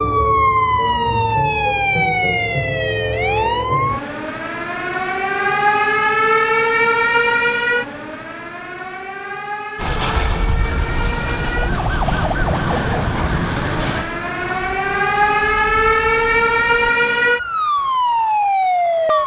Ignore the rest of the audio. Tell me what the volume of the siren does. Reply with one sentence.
The volume of the siren goes down, then up.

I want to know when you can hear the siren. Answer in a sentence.
You can hear the siren from 0.0 to 19.2 s.